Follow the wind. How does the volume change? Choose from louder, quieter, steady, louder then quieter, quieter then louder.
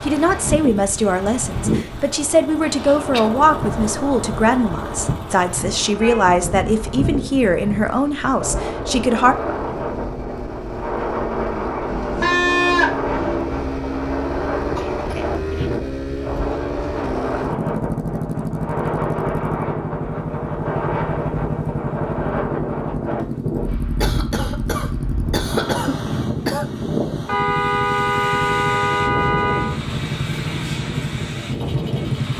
steady.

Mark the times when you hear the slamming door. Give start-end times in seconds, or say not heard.
not heard.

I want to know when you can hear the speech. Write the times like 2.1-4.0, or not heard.
0.0-9.3.